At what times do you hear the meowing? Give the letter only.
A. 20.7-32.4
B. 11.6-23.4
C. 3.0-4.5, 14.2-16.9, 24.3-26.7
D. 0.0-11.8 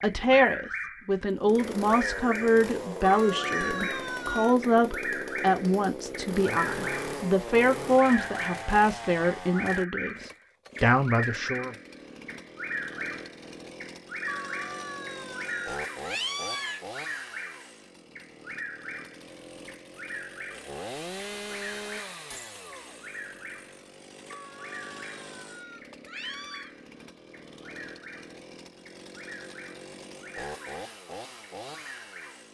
C.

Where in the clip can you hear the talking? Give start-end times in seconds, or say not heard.
0.0-11.8.